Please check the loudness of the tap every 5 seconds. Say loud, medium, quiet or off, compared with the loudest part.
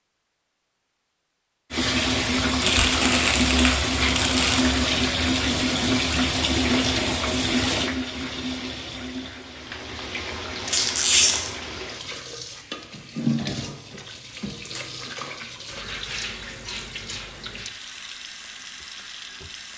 loud, loud, medium, quiet.